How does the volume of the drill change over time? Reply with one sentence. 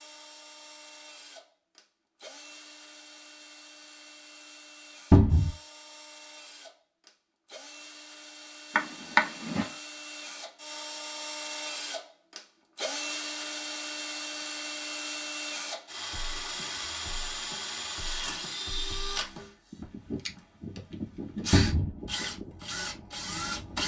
The loudness of the drill goes up.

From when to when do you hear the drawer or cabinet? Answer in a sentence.
You can hear the drawer or cabinet from 5.1 to 5.5 s, from 8.8 to 9.7 s and from 21.5 to 21.9 s.